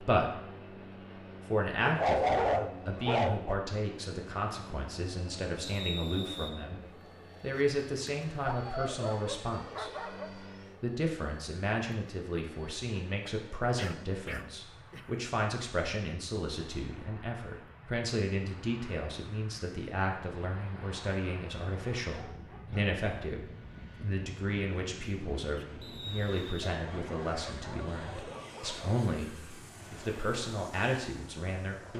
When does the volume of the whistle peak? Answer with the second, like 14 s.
6 s.